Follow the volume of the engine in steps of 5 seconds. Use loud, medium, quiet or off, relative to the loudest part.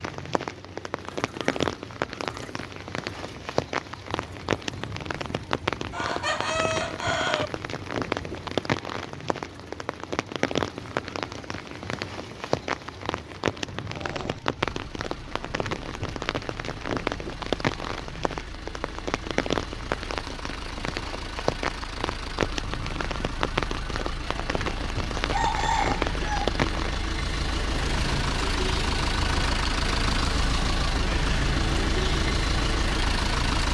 quiet, quiet, quiet, quiet, medium, loud, loud.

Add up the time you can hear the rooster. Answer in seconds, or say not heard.
3 s.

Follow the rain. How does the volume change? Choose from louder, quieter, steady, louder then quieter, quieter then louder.
steady.